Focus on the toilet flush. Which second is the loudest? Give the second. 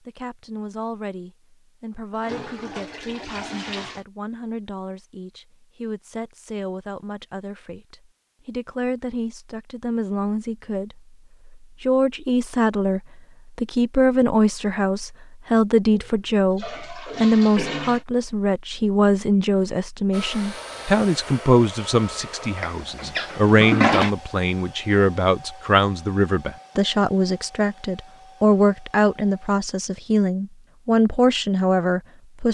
24 s.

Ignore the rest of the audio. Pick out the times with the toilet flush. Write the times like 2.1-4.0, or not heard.
2.1-4.0, 15.9-18.1, 22.6-24.1.